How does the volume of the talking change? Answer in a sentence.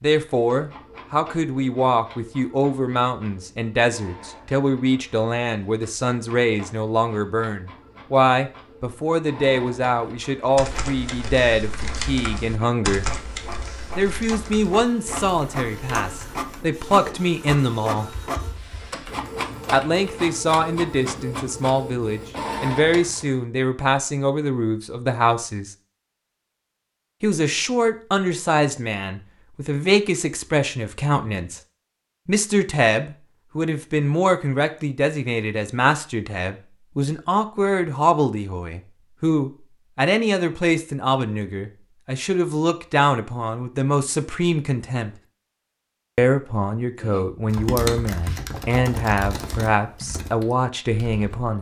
The volume of the talking stays about the same.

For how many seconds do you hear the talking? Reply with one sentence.
You can hear the talking for 46 seconds altogether.